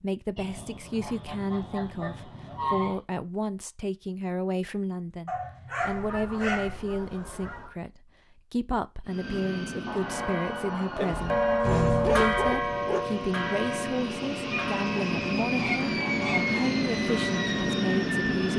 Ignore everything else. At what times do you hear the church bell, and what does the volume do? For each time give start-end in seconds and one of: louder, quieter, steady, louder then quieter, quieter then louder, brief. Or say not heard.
10.0-17.9 quieter.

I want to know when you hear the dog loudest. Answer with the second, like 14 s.
12 s.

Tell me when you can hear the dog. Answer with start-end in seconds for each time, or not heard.
5.2-6.8, 11.1-13.0.